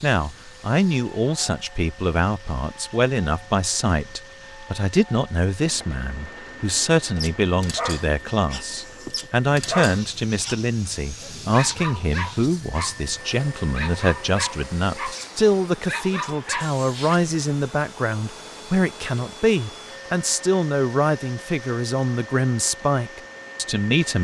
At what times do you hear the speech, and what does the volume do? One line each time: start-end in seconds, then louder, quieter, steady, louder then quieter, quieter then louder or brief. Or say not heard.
0.0-24.2 steady.